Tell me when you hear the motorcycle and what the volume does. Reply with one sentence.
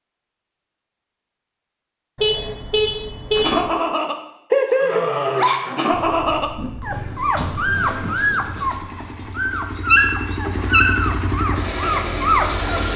The motorcycle can be heard from 5.8 to 12.9 s, getting louder.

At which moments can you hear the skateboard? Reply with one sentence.
The skateboard can't be heard in this clip.